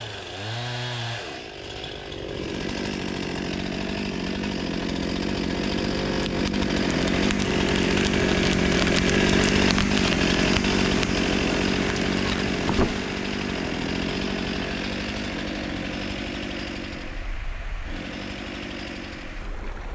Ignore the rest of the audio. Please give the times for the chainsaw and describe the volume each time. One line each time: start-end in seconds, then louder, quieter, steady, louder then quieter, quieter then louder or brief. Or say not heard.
0.0-19.9 louder then quieter.